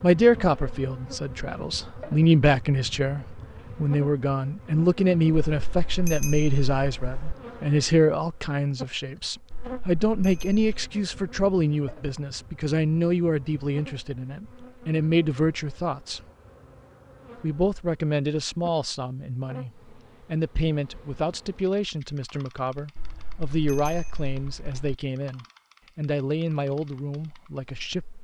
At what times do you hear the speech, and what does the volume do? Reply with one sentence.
You can hear the speech from 0.0 to 16.2 s, at a steady volume; and from 17.4 to 28.1 s, at a steady volume.